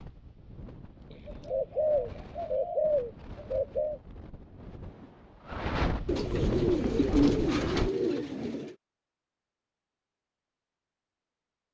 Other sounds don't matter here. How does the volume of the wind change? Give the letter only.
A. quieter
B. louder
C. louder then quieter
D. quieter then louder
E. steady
B.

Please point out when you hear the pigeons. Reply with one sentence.
The pigeons can be heard from 1.1 to 4.0 s and from 6.0 to 8.8 s.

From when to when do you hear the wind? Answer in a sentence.
You can hear the wind from 0.0 to 7.9 s.